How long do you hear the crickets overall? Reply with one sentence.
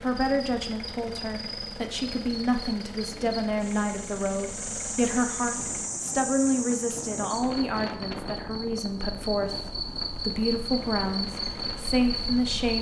The crickets can be heard for 13 seconds in total.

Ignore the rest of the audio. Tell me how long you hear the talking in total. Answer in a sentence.
You can hear the talking for 13 seconds altogether.